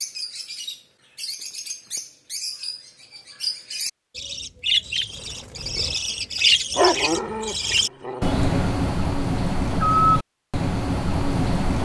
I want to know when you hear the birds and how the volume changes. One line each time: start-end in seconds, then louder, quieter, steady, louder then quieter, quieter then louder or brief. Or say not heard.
0.0-11.8 louder.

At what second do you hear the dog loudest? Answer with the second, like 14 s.
7 s.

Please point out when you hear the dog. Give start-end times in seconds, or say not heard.
6.8-8.7.